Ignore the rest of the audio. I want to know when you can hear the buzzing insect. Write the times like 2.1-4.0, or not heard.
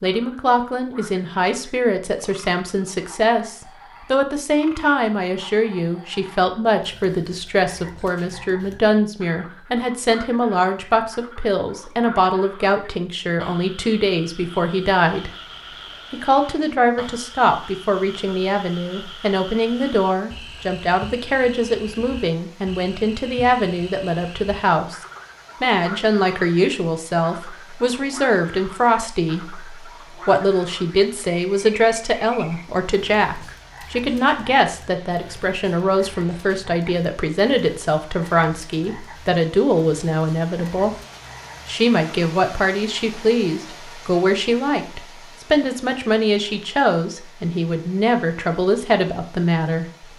not heard.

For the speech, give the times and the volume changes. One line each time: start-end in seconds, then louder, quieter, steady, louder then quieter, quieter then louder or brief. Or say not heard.
0.0-15.3 steady
16.1-24.9 steady
25.6-41.0 steady
41.6-49.9 steady.